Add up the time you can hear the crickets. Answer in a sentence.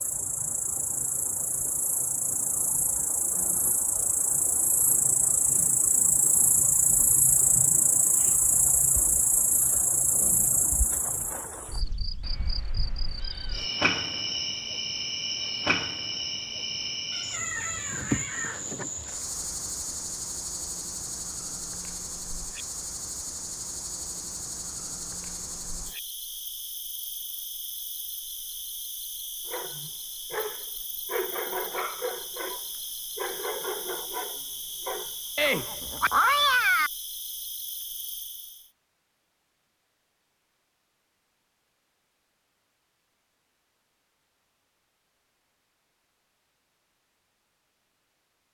You can hear the crickets for 39 seconds altogether.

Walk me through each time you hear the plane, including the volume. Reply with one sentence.
You can't hear the plane here.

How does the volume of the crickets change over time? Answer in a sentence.
The volume of the crickets goes down.